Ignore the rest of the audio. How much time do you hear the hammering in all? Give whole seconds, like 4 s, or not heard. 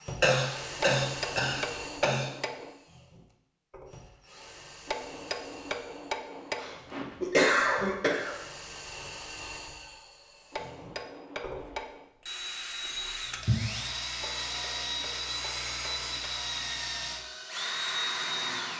8 s.